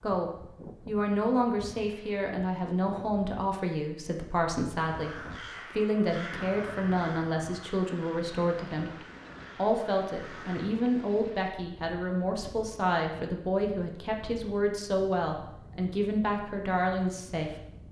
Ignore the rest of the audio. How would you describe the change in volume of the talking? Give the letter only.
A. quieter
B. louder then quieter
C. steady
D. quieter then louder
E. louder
C.